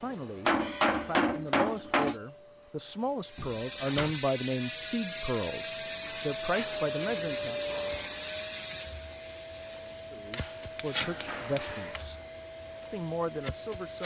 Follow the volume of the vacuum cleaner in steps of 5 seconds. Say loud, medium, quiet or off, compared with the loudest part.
medium, loud, loud.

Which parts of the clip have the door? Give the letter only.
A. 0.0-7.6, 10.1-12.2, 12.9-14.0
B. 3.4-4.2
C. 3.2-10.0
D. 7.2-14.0
B.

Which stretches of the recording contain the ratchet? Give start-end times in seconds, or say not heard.
3.2-10.0.